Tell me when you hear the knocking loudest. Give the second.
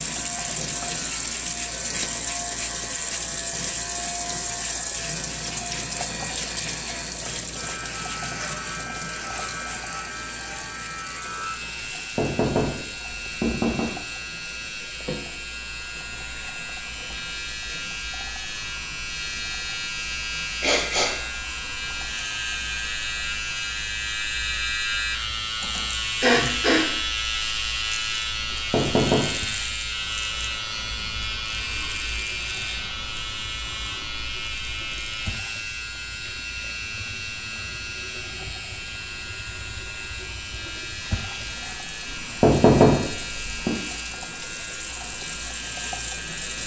43 s.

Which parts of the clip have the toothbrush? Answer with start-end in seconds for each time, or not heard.
not heard.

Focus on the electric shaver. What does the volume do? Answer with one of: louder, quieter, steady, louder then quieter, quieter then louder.
louder then quieter.